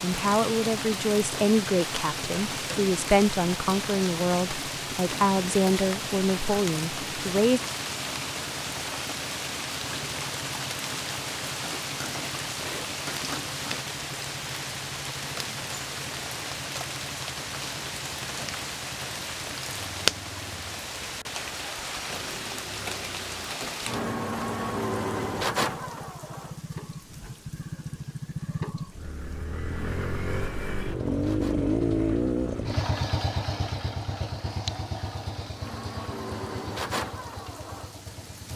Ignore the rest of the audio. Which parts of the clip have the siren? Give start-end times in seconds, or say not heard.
not heard.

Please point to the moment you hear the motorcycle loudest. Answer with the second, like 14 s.
32 s.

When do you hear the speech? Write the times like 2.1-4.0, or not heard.
0.0-7.6.